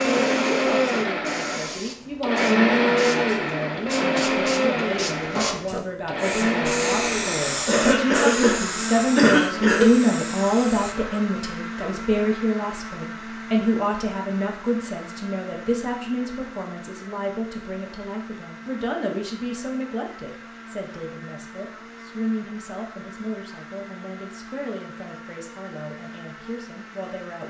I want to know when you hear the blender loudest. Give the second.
3 s.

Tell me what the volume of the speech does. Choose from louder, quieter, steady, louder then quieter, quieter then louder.
louder then quieter.